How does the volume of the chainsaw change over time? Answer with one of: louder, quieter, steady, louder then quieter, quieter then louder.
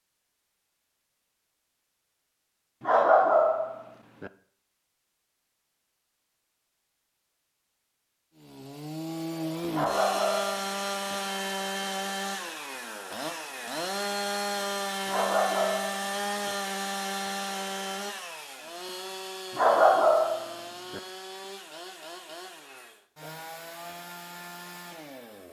quieter.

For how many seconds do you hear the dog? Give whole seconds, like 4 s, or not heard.
6 s.